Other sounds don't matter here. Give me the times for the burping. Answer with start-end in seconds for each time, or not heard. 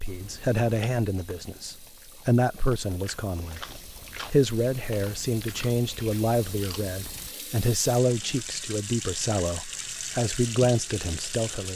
not heard.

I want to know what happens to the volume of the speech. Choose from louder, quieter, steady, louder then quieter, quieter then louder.
steady.